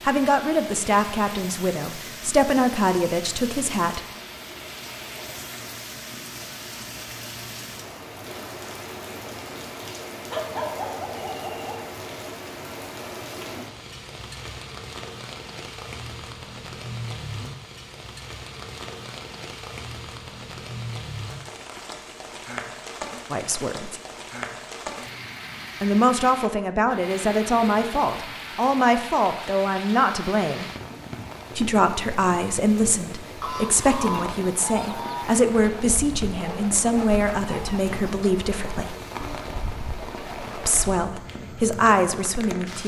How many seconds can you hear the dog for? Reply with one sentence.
You can hear the dog for 3 seconds altogether.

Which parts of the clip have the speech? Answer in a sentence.
The speech can be heard from 0.0 to 4.0 s, from 23.3 to 24.0 s, from 25.8 to 30.6 s, from 31.6 to 39.0 s and from 40.5 to 42.8 s.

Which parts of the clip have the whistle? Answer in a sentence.
The whistle can't be heard in this clip.